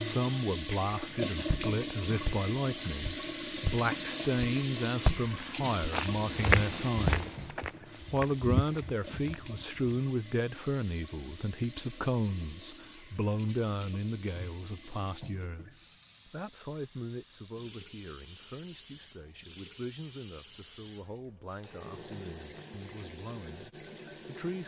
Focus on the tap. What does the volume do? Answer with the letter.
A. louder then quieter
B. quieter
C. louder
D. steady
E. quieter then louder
B.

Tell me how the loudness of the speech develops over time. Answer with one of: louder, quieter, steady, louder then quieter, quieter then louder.
quieter.